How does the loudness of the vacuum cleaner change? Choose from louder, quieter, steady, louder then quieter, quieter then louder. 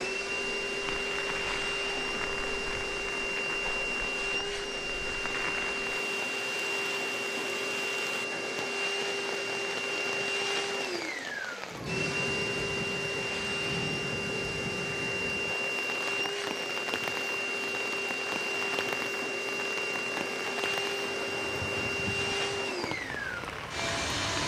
steady.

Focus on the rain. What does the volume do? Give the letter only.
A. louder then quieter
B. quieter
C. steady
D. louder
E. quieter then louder
C.